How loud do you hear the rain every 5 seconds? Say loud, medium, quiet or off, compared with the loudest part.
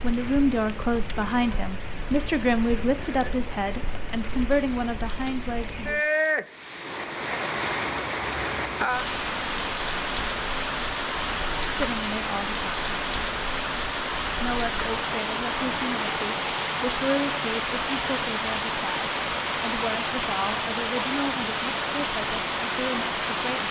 medium, loud, loud, loud, loud.